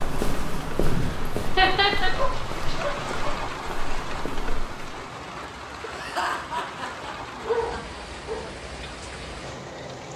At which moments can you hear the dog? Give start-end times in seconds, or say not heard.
0.8-3.4, 7.3-8.4.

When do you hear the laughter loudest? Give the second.
2 s.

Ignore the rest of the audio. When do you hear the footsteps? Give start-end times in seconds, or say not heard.
0.0-5.0.